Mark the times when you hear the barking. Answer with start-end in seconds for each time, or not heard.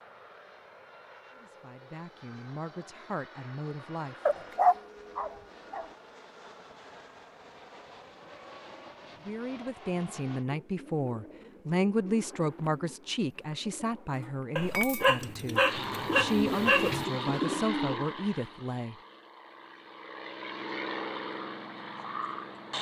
4.2-5.8, 14.6-17.1.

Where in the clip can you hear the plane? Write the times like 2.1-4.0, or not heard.
0.0-10.4, 15.7-22.7.